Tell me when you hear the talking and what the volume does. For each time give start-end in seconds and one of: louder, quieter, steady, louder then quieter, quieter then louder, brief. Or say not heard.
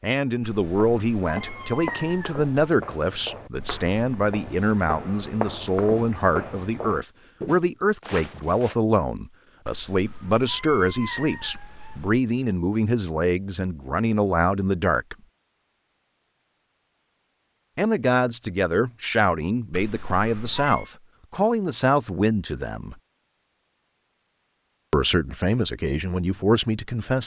0.0-15.2 steady
17.8-22.9 steady
24.9-27.2 brief.